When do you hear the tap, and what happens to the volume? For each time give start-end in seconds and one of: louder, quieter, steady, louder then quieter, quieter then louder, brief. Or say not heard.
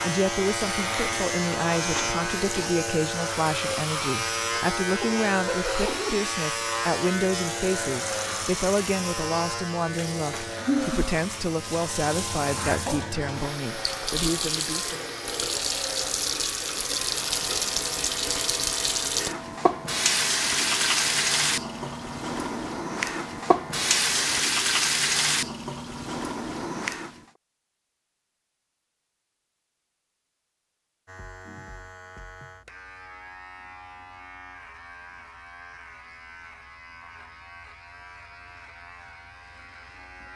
0.0-27.2 louder.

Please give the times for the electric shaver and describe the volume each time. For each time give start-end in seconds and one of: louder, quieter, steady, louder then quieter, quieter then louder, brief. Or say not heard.
0.0-24.4 quieter
31.1-40.3 steady.